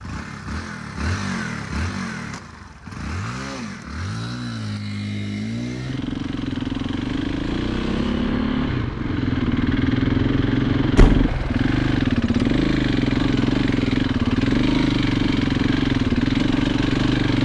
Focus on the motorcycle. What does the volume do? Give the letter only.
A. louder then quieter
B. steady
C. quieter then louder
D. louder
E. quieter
D.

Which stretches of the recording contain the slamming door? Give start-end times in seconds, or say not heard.
10.9-11.4.